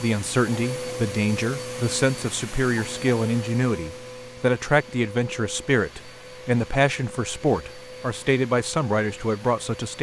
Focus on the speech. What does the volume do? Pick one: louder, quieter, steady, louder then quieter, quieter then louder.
steady.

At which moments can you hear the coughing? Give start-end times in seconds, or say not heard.
not heard.